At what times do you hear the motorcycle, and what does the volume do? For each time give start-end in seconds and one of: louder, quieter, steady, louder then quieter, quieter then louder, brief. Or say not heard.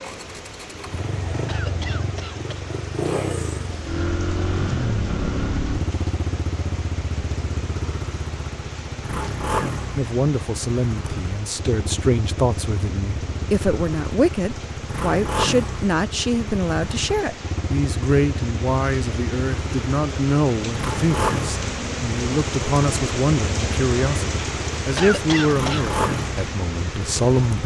0.0-27.6 steady.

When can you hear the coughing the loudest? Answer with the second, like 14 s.
25 s.